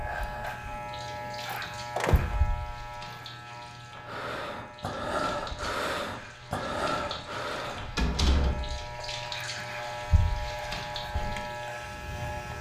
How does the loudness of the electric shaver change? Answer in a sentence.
The loudness of the electric shaver goes down, then up.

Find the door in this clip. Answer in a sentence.
You can hear the door from 1.2 to 2.4 s and from 8.0 to 9.1 s.